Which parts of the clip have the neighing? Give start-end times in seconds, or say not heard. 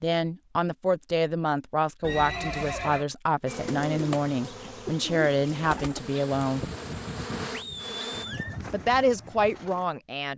2.0-3.0, 7.5-8.6.